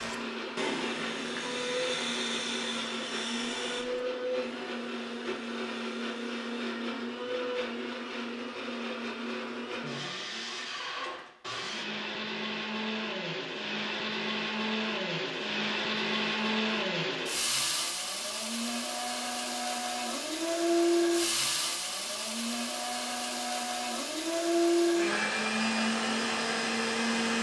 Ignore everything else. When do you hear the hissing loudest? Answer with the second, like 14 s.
2 s.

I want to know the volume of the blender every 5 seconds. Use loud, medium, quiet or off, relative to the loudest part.
medium, medium, medium, loud, loud, loud.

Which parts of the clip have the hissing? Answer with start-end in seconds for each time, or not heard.
0.0-6.5.